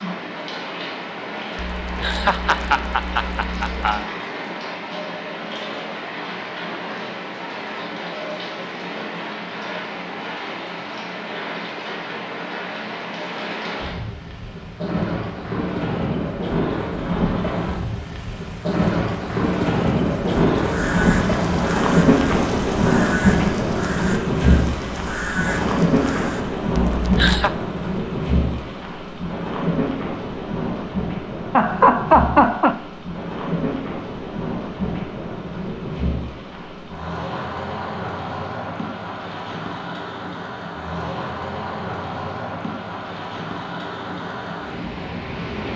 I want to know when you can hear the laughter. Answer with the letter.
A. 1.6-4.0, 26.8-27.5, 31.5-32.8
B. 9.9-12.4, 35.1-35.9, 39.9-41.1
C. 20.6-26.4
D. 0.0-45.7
A.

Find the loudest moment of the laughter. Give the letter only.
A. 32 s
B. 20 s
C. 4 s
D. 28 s
A.